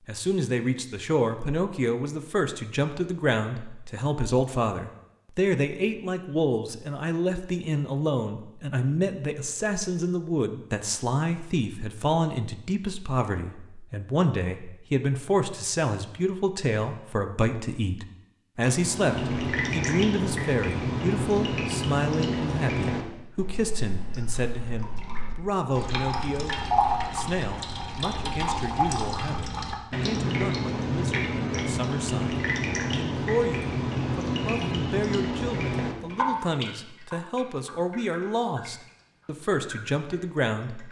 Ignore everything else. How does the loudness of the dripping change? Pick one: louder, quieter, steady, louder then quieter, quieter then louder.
quieter.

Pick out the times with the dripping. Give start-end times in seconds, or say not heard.
18.6-40.8.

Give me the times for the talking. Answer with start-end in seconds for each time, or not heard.
0.1-40.8.